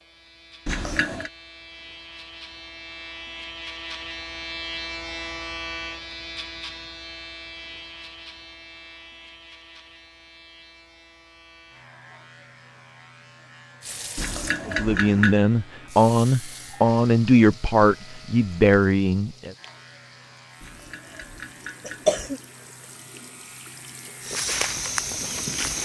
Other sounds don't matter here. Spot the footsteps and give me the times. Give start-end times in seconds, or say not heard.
24.2-25.7.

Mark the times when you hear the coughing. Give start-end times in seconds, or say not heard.
0.7-1.3, 14.2-15.3, 20.6-22.4.